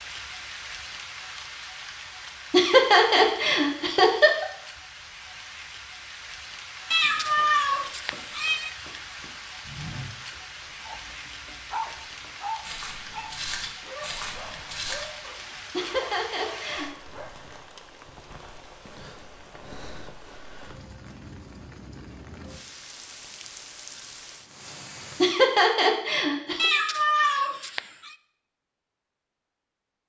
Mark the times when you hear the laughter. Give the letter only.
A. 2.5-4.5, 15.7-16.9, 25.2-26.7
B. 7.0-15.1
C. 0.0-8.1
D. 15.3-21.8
A.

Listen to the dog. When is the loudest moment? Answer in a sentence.
The loudest moment of the dog is at 12 seconds.